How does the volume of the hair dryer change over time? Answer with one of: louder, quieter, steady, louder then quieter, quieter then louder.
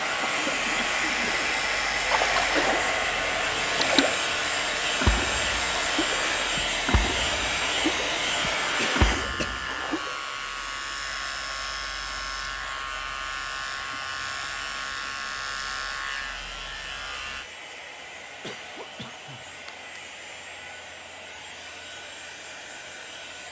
quieter.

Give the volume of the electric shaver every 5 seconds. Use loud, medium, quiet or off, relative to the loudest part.
loud, loud, loud, loud, off.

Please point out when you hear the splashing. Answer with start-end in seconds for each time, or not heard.
2.0-3.0, 3.8-4.2, 5.0-10.2.